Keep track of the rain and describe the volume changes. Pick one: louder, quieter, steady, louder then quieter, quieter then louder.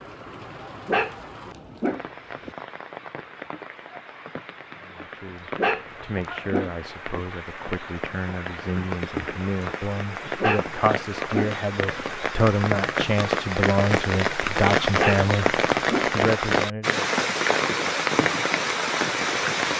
louder.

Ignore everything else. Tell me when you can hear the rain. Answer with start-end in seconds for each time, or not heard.
0.0-19.7.